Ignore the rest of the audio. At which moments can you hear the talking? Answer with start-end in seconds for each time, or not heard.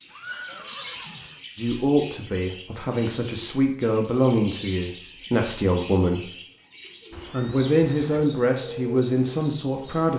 1.6-6.2, 7.3-10.1.